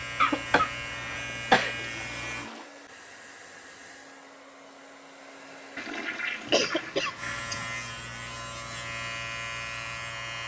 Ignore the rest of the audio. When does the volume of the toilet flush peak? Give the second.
6 s.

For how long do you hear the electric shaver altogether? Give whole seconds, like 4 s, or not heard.
6 s.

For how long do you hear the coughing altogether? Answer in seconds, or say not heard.
3 s.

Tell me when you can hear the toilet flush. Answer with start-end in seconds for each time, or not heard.
1.8-2.7, 5.8-7.5.